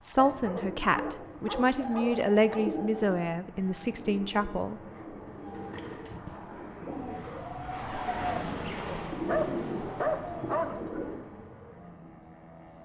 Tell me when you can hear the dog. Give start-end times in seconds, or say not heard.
0.4-2.7, 5.8-6.3, 9.2-10.8.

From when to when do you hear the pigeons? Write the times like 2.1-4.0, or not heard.
0.1-11.2.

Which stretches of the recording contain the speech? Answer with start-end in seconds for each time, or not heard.
0.0-4.8.